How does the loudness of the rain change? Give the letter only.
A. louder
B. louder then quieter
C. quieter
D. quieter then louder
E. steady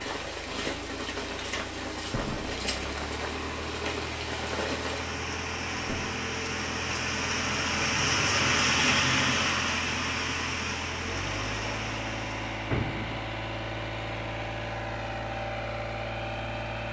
B.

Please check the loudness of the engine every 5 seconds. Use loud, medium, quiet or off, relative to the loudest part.
medium, loud, loud, loud.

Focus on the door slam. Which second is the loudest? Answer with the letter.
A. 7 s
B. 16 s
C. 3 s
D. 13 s
D.